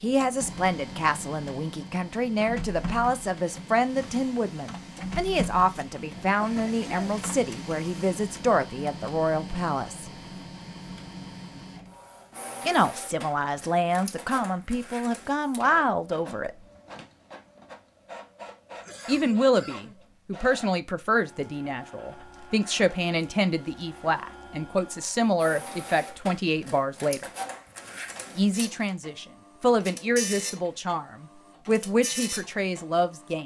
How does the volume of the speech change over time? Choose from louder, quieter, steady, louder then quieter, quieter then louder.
steady.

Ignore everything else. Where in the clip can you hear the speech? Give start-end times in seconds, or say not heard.
0.0-10.1, 12.7-16.6, 19.1-27.3, 28.4-33.4.